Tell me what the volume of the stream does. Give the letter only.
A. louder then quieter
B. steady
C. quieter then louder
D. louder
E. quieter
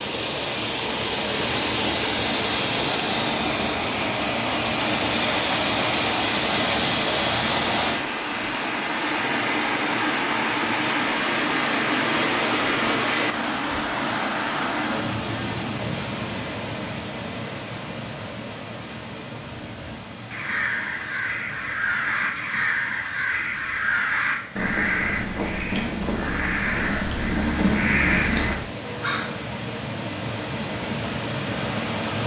C.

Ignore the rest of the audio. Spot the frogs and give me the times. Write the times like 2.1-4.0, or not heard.
not heard.